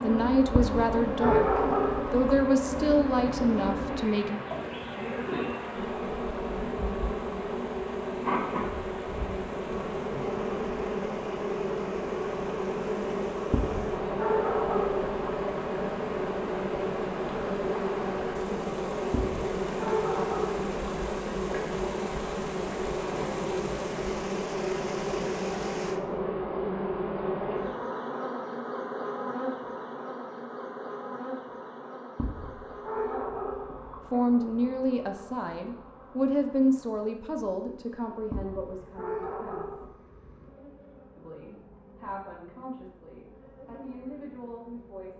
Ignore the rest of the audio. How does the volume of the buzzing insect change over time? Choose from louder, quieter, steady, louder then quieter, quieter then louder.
quieter.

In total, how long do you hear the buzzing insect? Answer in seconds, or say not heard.
45 s.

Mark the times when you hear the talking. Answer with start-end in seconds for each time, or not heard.
0.0-1.5, 2.1-4.4, 34.1-39.8, 41.1-45.1.